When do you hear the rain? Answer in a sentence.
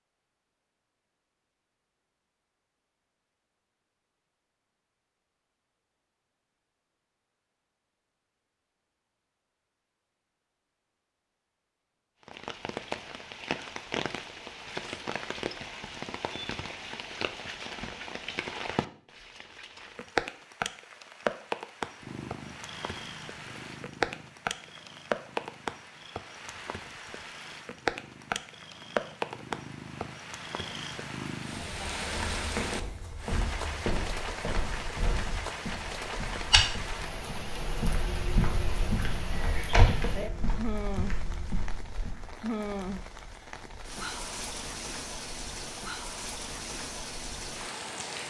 You can hear the rain from 12.2 to 48.2 s.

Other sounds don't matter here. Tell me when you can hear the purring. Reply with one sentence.
The purring can be heard from 22.0 to 31.7 s.